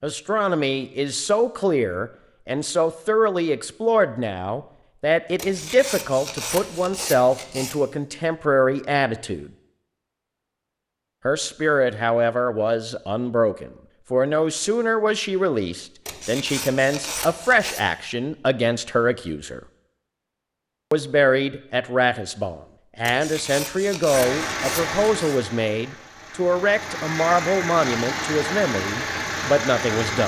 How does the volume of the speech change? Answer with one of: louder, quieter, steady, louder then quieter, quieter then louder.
steady.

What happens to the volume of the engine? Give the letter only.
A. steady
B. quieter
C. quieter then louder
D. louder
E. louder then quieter
C.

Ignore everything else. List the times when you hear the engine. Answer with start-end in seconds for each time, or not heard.
24.1-30.2.